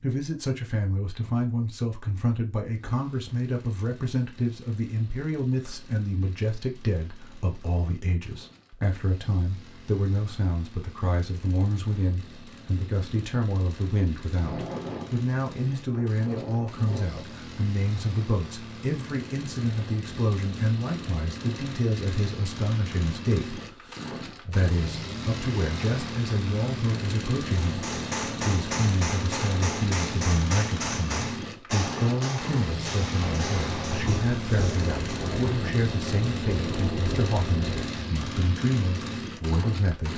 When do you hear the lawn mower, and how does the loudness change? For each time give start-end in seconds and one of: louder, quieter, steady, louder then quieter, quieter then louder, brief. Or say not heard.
2.9-40.1 louder.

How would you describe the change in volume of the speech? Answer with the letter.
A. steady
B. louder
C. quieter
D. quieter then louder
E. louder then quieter
A.